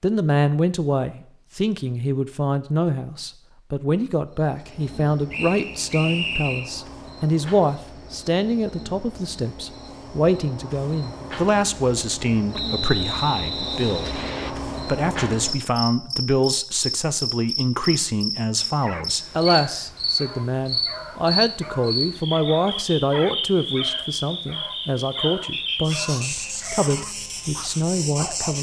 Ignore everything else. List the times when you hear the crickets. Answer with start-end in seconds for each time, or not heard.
4.4-28.5.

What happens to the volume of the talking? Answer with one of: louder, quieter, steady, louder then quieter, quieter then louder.
steady.